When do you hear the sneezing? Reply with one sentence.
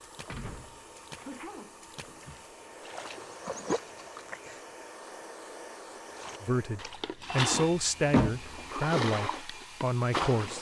You can hear the sneezing from 1.1 to 2.4 s.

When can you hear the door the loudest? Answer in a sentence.
The loudest moment of the door is at 8 seconds.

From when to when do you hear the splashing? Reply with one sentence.
You can hear the splashing from 0.0 to 4.7 s and from 6.2 to 10.5 s.